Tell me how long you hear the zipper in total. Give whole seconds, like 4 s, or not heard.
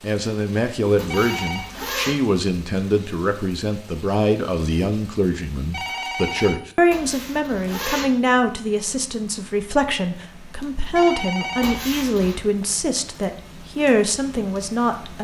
3 s.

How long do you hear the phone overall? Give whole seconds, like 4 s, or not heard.
2 s.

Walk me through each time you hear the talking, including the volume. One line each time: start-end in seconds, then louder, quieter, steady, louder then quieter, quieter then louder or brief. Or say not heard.
0.0-15.1 steady.